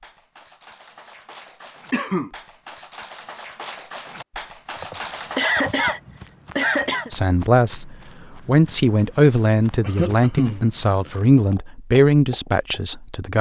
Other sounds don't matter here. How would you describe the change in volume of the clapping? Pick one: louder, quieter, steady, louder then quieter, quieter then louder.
louder.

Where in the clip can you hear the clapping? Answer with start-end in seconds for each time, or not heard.
0.0-5.8.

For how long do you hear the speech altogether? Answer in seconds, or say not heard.
6 s.